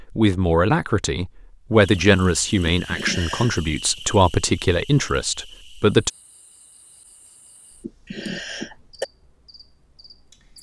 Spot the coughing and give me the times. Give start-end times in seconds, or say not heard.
2.6-3.5, 7.8-9.1.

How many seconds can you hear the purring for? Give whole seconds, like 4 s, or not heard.
not heard.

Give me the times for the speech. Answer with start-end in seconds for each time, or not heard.
0.0-6.1.